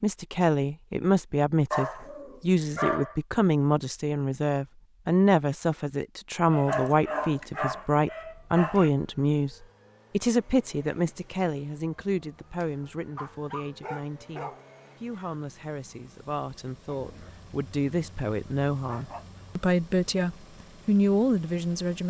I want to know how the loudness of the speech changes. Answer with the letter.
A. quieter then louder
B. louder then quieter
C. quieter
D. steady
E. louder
A.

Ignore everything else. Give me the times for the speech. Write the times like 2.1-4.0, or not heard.
0.0-22.0.